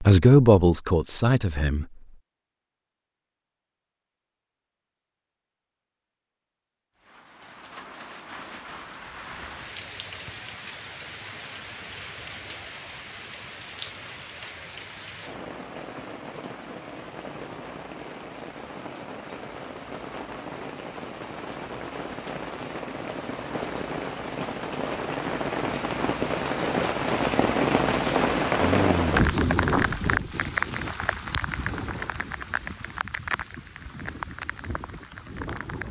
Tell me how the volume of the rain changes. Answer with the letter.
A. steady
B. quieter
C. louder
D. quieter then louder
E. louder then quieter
E.